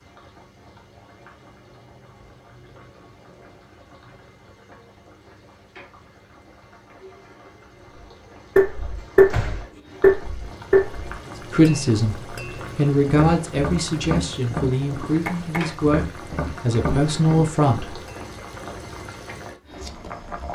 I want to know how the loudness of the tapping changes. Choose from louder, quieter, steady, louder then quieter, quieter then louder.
quieter.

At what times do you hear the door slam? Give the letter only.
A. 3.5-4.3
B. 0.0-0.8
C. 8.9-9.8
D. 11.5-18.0
C.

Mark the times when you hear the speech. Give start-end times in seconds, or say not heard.
11.5-18.0.